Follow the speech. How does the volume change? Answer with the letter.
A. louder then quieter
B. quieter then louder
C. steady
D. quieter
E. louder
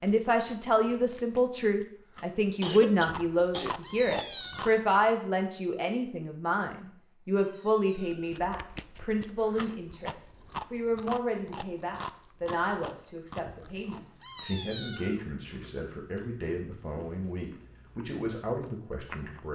D.